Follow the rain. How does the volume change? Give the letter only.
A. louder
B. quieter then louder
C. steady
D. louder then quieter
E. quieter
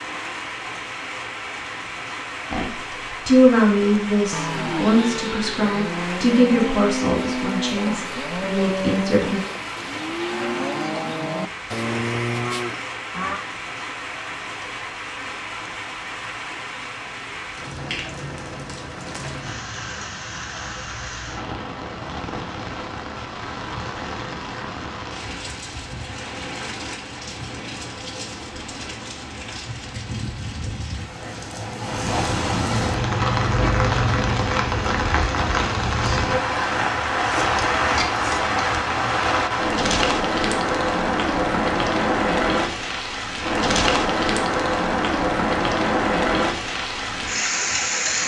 A.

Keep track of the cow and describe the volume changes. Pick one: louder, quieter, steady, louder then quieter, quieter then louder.
steady.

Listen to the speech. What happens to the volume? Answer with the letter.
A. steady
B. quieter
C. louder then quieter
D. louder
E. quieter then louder
B.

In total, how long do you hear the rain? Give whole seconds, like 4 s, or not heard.
48 s.